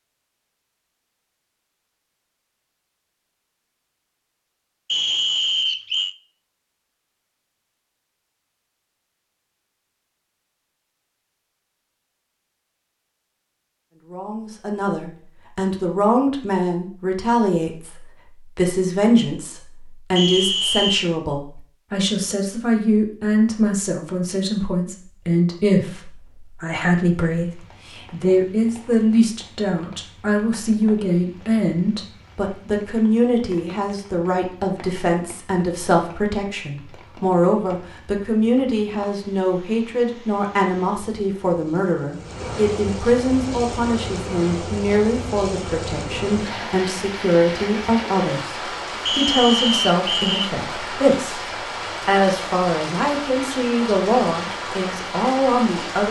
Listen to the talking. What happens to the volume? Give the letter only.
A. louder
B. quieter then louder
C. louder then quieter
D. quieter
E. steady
E.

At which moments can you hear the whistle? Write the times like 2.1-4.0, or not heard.
4.8-6.2, 20.1-21.1, 49.0-50.5.